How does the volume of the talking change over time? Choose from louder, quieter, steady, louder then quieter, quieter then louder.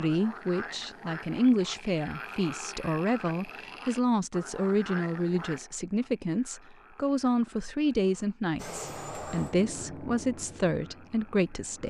steady.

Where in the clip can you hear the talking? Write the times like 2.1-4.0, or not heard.
0.0-11.8.